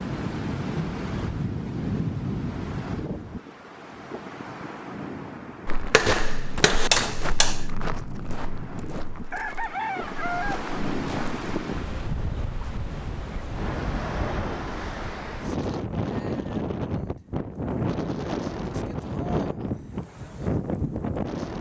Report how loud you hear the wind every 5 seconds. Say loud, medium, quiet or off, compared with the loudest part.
loud, medium, loud, loud, loud.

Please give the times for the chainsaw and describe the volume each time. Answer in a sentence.
The chainsaw can't be heard in this clip.